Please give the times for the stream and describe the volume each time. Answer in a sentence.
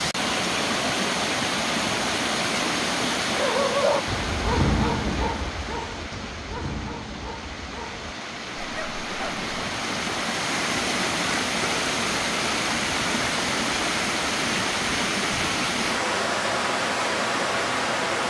You can hear the stream from 0.0 to 18.2 s, getting quieter then louder.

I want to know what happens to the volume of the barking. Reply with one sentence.
The loudness of the barking goes down.